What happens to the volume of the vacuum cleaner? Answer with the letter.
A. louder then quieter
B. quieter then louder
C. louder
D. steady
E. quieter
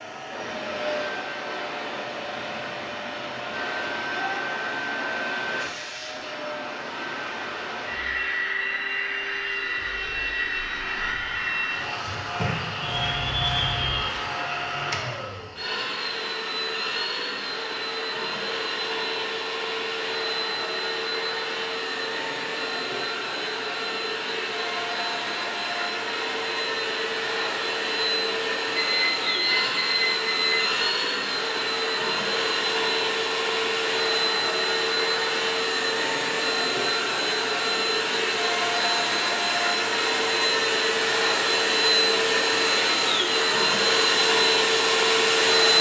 C.